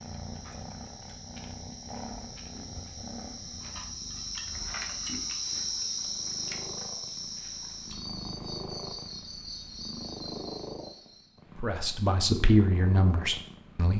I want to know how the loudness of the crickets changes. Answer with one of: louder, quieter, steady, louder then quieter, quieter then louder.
louder then quieter.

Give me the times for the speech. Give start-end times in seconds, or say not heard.
11.6-13.9.